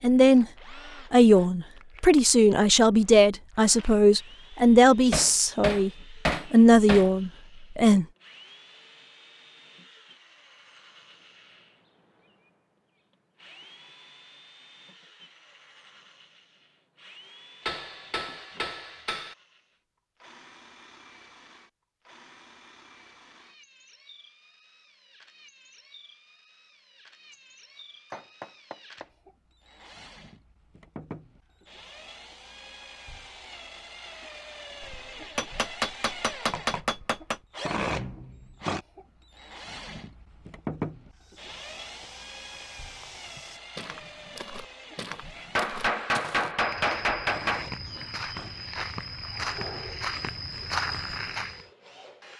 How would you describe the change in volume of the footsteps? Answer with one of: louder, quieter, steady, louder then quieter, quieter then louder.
louder.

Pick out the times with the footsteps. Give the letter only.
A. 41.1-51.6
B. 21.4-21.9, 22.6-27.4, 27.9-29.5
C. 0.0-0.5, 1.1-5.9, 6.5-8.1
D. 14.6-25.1
A.